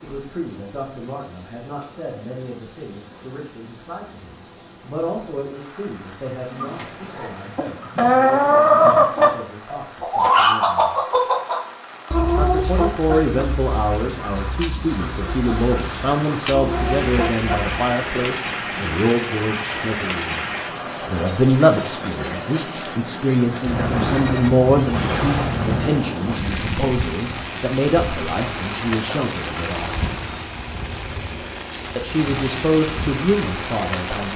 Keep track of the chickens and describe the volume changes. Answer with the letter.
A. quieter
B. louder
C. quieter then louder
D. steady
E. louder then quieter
C.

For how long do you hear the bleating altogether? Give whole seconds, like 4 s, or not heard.
2 s.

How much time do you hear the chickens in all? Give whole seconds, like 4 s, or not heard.
11 s.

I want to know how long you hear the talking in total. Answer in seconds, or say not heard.
30 s.